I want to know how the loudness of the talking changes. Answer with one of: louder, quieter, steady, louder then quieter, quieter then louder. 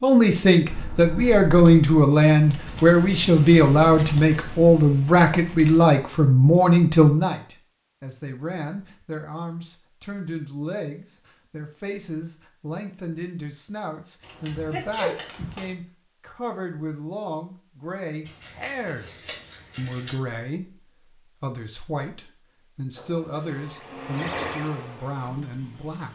quieter.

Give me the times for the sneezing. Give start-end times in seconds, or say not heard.
14.7-15.2.